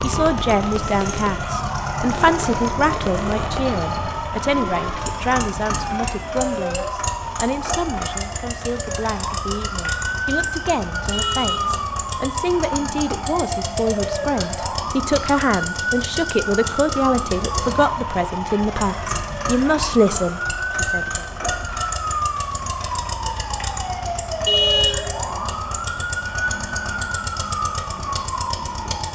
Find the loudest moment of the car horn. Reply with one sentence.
The volume of the car horn peaks at 25 seconds.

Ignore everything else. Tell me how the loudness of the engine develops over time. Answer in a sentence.
The loudness of the engine stays about the same.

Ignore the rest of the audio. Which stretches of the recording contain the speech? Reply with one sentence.
You can hear the speech from 0.0 to 21.2 s.